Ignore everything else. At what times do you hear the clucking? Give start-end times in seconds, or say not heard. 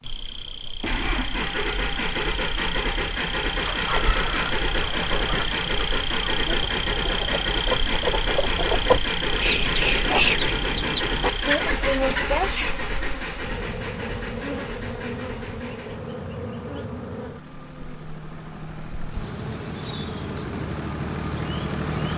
3.5-12.8.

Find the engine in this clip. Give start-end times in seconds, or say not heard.
0.2-22.1.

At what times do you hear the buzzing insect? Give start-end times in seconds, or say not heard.
0.0-22.1.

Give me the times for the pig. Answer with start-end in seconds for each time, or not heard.
not heard.